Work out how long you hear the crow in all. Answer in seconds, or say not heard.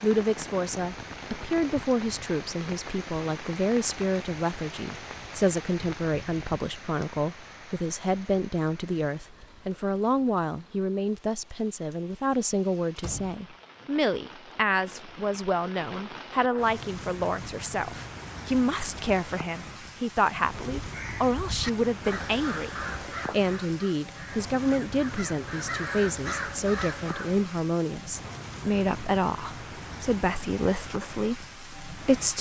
7 s.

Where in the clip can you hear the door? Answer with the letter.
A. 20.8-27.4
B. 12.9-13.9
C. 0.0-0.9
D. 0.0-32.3
B.